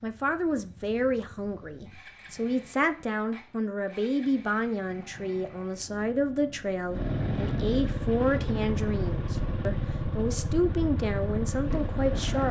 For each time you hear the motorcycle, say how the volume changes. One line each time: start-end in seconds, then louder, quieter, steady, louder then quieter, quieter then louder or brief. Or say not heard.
0.0-12.4 louder.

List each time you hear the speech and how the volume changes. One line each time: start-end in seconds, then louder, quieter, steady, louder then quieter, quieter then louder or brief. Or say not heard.
0.0-12.4 steady.